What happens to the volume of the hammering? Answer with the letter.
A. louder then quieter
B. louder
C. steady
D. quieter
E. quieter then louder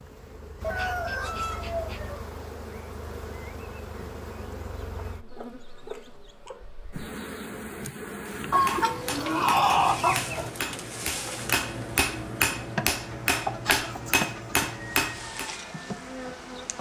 B.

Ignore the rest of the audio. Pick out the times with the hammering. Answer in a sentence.
The hammering can be heard from 8.4 to 15.5 s.